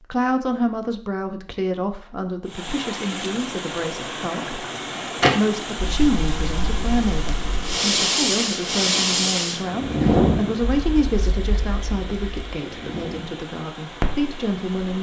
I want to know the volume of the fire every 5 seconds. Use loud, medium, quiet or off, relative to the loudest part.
off, loud, loud.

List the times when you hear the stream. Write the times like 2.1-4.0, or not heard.
2.5-14.9.